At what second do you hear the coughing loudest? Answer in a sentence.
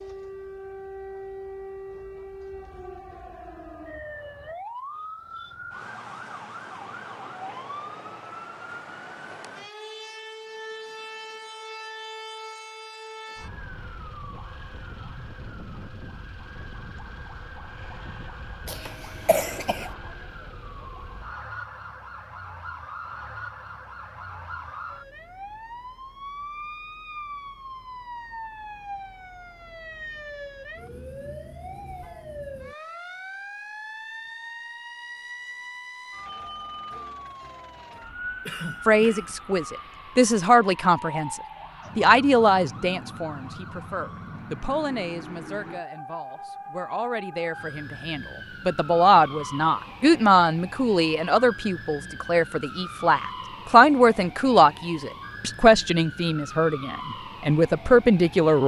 The loudest moment of the coughing is at 19 seconds.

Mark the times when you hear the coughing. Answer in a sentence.
The coughing can be heard from 18.6 to 19.9 s and from 38.5 to 39.4 s.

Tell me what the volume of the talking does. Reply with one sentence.
The volume of the talking goes down, then up.